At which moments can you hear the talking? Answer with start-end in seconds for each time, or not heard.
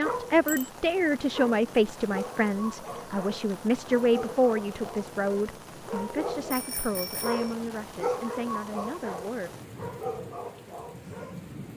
0.0-9.5.